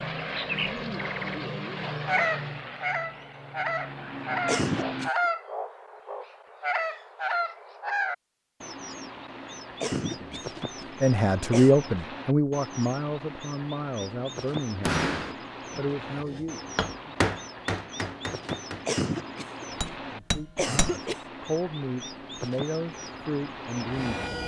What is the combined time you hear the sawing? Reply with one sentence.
The sawing can't be heard in this clip.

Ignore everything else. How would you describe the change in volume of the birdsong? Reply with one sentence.
The volume of the birdsong goes down.